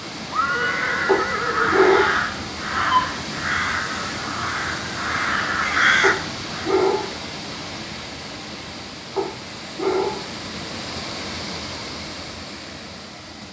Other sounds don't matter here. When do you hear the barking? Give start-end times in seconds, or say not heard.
1.1-2.2, 6.0-7.2, 9.2-10.2.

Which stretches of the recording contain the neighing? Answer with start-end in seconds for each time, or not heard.
0.3-1.8.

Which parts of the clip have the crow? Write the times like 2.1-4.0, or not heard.
0.6-6.8.